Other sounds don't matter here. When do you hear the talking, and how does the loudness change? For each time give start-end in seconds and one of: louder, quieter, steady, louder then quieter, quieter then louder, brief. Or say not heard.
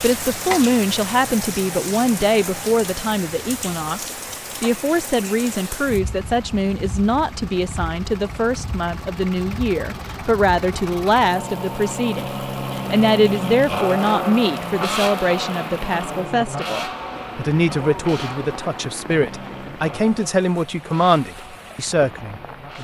0.0-22.7 steady.